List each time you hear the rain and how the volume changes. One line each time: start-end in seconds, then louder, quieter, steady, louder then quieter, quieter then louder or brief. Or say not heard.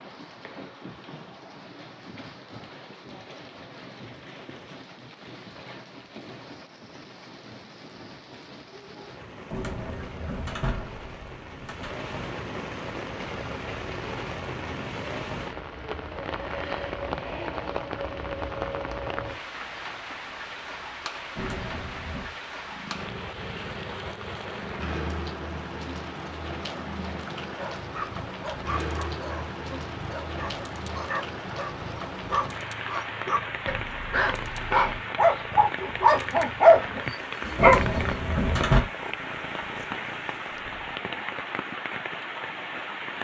0.0-43.1 louder.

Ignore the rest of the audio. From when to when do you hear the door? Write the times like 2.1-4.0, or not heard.
9.5-11.9, 21.4-22.4, 37.5-38.9.